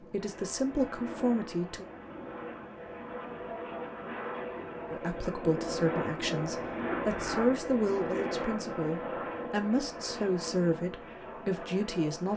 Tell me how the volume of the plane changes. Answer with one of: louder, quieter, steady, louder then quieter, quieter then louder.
louder then quieter.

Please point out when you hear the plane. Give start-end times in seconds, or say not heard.
0.0-12.3.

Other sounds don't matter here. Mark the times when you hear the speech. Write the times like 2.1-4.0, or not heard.
0.0-1.9, 4.9-12.3.